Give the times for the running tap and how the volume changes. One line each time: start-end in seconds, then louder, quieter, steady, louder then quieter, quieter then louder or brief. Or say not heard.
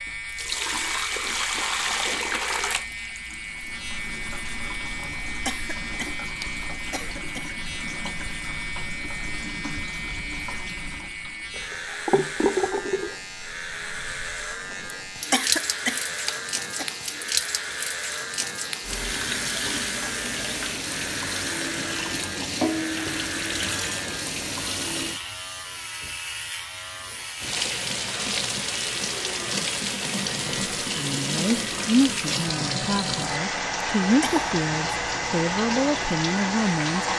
0.0-25.2 quieter then louder
27.4-37.1 steady.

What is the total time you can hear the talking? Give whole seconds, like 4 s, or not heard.
6 s.